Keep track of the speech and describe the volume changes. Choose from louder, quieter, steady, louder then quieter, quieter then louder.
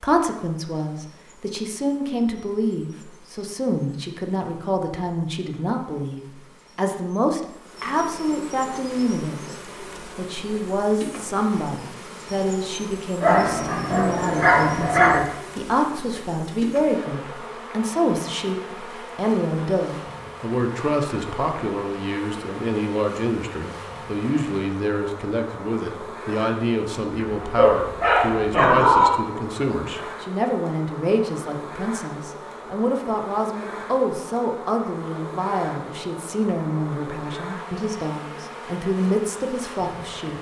steady.